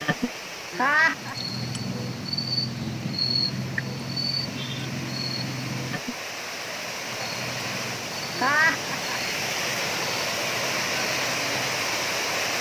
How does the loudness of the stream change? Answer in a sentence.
The volume of the stream goes up.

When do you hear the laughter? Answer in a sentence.
The laughter can be heard from 0.7 to 1.4 s and from 8.3 to 9.2 s.